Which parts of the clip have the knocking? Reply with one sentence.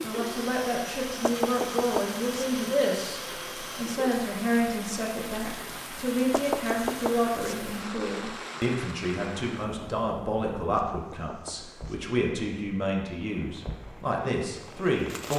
You can hear the knocking from 1.2 to 2.5 s, from 6.3 to 7.3 s and from 10.8 to 12.0 s.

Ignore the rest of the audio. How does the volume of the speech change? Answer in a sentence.
The loudness of the speech stays about the same.